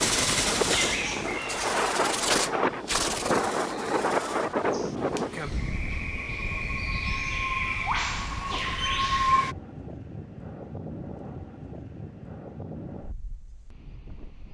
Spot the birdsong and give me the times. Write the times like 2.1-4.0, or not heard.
0.0-9.6.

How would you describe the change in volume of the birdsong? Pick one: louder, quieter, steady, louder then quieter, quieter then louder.
quieter then louder.